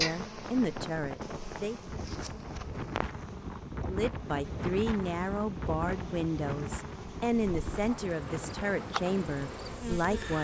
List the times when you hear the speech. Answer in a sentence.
The speech can be heard from 0.0 to 1.8 s and from 3.9 to 10.3 s.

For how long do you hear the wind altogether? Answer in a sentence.
You can hear the wind for 10 seconds altogether.